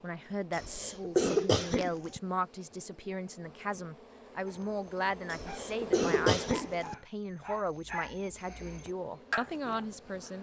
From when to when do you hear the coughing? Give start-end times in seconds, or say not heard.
0.5-2.2, 5.3-7.0.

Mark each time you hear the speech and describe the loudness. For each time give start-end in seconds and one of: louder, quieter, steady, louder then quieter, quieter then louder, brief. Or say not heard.
0.0-10.3 steady.